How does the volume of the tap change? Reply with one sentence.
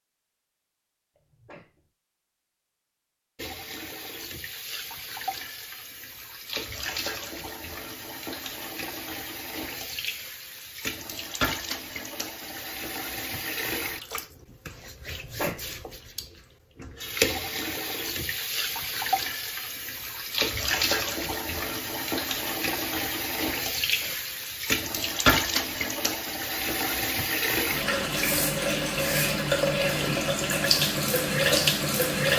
The loudness of the tap goes up.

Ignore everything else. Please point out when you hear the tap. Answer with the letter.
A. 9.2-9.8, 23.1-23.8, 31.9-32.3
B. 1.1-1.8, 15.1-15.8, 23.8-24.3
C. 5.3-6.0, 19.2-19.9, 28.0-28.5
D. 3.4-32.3
D.